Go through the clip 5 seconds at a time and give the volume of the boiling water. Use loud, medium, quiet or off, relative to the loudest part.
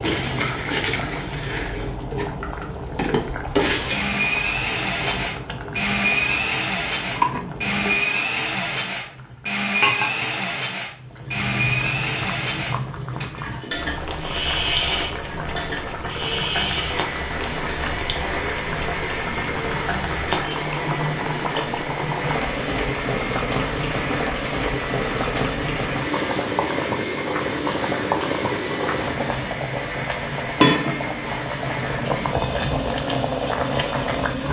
medium, medium, medium, medium, loud, loud, loud.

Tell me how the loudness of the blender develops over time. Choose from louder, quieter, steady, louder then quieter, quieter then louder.
quieter.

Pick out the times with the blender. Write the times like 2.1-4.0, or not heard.
0.0-34.4.